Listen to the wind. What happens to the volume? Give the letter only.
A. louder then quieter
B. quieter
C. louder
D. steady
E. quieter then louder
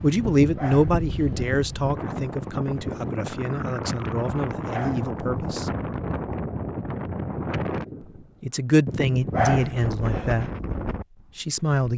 D.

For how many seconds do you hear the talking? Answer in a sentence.
You can hear the talking for 8 seconds altogether.